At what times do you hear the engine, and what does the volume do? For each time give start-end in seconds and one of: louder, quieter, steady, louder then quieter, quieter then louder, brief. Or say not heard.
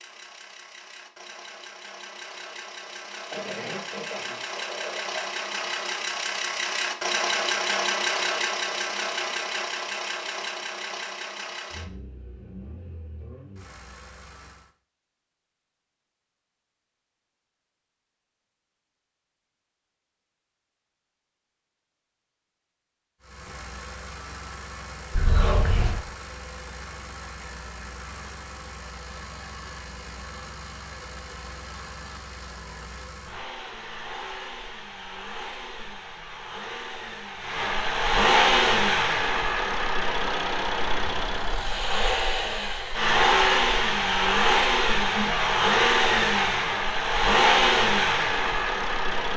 0.0-14.7 louder then quieter
23.2-49.3 louder.